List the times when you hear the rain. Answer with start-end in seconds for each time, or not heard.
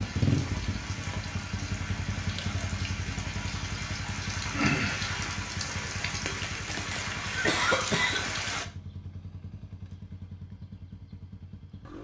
0.0-8.7.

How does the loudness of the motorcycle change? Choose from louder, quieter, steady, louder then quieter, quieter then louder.
quieter.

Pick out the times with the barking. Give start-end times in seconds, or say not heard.
not heard.